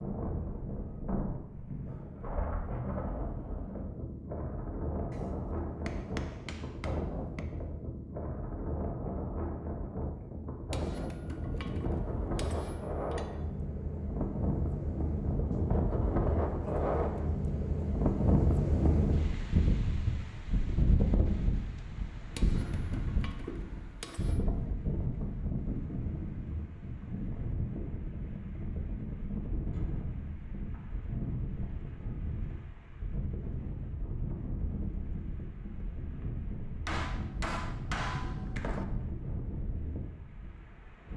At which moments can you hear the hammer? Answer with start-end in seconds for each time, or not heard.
5.1-7.5, 10.7-13.3, 22.4-24.4, 36.9-38.9.